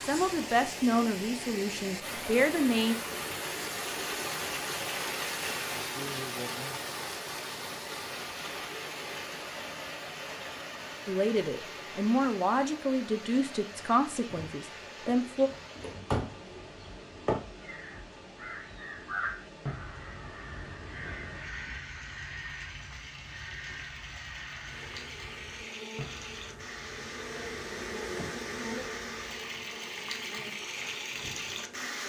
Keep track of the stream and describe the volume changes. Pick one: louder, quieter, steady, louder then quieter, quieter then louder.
quieter then louder.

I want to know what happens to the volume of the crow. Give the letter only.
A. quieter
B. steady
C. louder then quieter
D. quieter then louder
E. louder
A.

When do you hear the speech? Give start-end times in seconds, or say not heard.
0.0-3.0, 11.1-15.5.